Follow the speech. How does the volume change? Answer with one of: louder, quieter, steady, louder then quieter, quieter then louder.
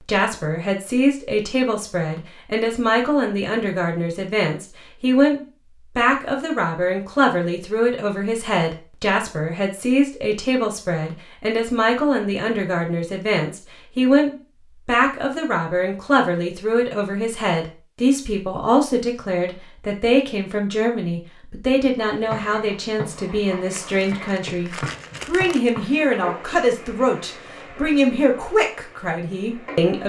steady.